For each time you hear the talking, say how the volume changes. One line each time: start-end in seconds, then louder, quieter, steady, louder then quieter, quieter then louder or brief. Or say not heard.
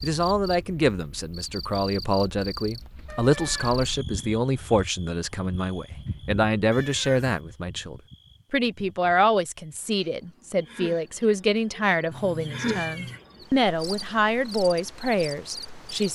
0.0-16.1 steady.